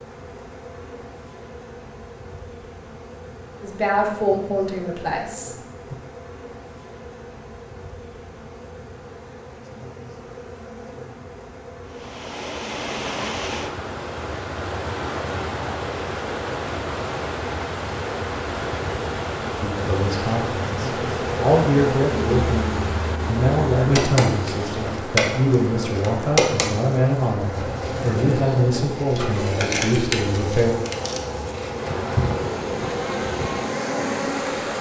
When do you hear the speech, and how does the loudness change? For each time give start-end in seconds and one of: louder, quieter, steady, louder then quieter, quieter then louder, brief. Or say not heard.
3.6-6.0 brief
19.6-30.8 steady.